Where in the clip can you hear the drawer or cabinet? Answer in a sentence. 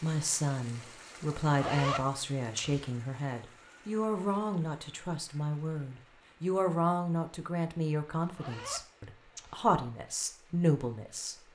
You can't hear the drawer or cabinet here.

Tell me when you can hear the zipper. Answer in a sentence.
You can hear the zipper from 1.4 to 2.9 s and from 8.1 to 9.6 s.